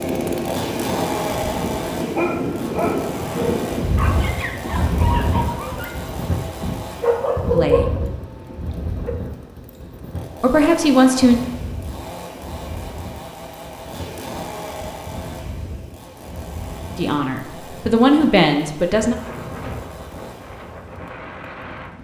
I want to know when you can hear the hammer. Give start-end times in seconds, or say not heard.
not heard.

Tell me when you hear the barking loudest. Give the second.
8 s.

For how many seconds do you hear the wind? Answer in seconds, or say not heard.
22 s.